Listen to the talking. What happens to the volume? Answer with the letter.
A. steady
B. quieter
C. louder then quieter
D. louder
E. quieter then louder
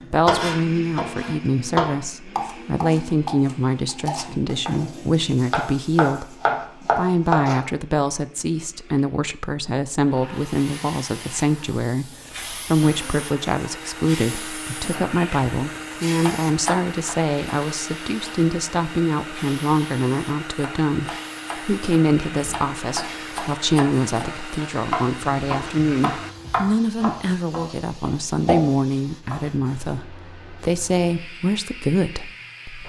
A.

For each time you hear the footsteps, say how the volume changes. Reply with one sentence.
The footsteps can't be heard in this clip.